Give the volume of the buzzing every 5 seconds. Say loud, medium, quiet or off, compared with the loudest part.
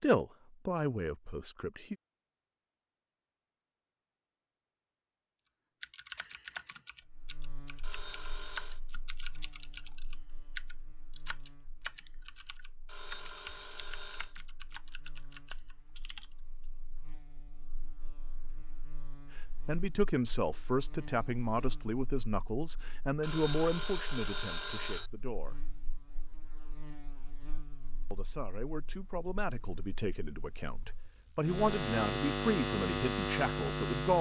off, quiet, quiet, quiet, quiet, quiet, loud.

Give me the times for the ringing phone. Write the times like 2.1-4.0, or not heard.
7.8-8.8, 12.8-14.3, 23.2-25.1.